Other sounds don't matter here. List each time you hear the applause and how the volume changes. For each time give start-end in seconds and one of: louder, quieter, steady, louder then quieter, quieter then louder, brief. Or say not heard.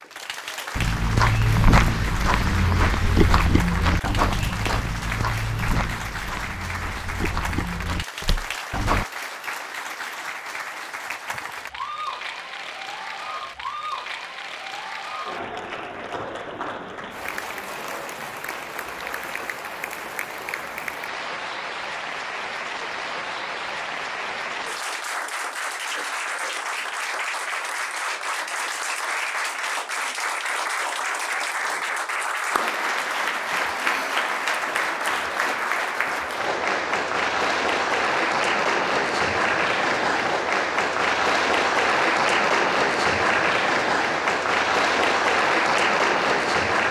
0.0-46.8 louder.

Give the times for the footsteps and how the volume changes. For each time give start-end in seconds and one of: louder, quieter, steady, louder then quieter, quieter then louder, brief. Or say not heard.
0.8-9.1 quieter.